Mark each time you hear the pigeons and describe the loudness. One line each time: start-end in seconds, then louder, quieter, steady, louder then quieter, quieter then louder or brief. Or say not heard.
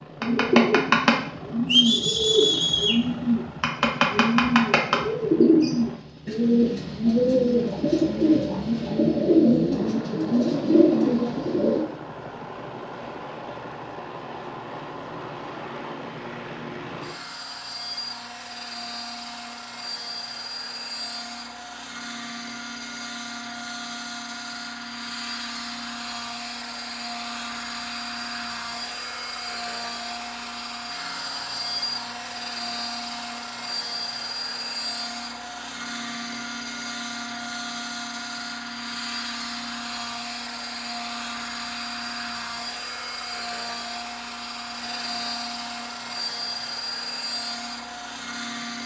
0.2-11.8 steady.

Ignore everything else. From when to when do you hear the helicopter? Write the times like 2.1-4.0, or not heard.
0.0-48.8.